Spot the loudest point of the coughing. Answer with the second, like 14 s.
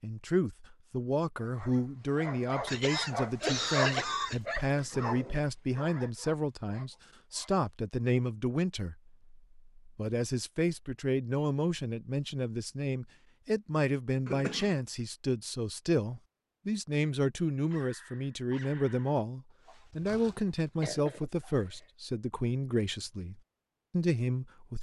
4 s.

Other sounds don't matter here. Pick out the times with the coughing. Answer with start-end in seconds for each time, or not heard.
2.6-4.4, 14.2-14.8, 20.8-21.9.